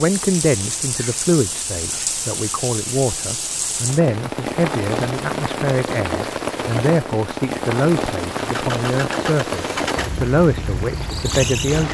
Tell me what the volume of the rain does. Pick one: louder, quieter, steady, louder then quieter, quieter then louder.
steady.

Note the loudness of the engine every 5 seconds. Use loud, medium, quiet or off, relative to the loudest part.
off, loud, loud.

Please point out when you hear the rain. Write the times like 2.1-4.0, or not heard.
0.0-11.8.